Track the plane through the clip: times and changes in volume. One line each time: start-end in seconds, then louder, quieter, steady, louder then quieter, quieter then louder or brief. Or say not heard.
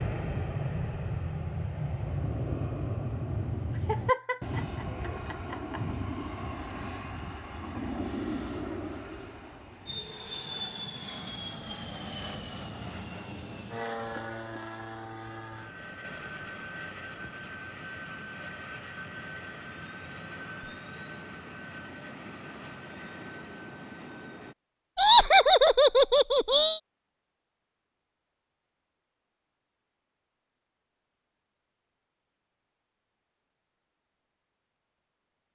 0.0-24.6 quieter.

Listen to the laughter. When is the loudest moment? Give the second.
25 s.